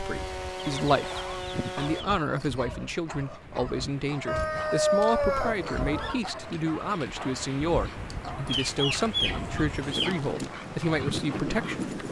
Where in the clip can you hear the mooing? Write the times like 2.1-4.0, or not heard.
not heard.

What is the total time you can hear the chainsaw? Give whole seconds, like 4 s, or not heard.
2 s.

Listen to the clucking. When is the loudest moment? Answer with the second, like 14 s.
5 s.